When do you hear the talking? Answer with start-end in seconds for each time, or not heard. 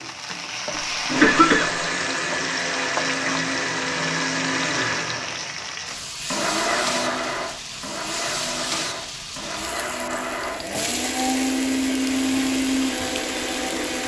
not heard.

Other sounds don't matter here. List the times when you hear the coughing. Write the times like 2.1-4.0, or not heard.
0.8-1.9.